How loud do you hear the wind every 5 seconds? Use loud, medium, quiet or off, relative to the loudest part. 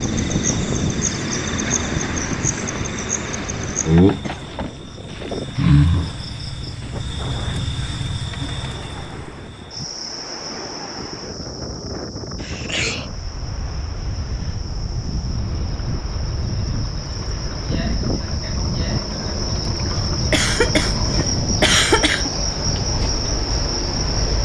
loud, medium, medium, loud, loud.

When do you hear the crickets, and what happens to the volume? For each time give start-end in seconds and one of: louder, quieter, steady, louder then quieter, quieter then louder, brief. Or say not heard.
0.0-24.4 quieter then louder.